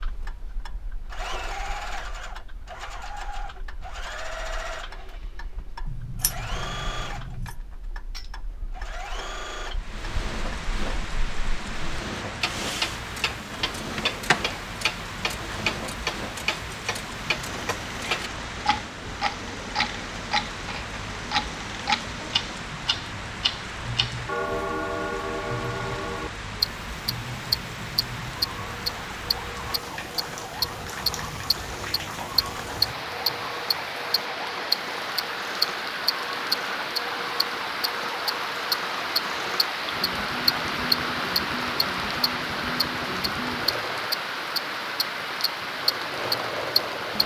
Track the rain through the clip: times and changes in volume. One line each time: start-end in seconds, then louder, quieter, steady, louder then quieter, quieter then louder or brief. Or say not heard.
9.7-47.2 louder.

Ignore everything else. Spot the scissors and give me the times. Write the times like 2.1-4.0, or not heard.
5.8-7.5.